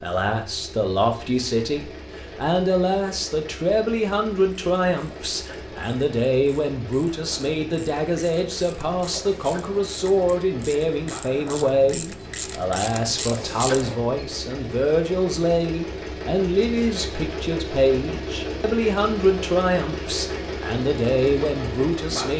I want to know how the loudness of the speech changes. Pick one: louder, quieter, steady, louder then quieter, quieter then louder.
steady.